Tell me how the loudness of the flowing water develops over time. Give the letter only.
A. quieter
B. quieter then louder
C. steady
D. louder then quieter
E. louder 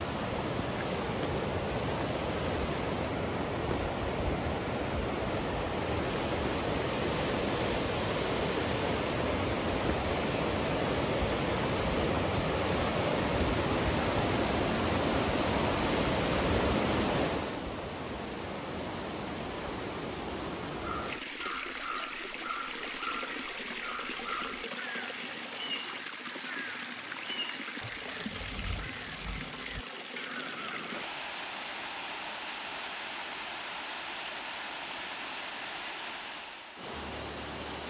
A.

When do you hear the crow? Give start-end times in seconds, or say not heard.
20.8-31.1.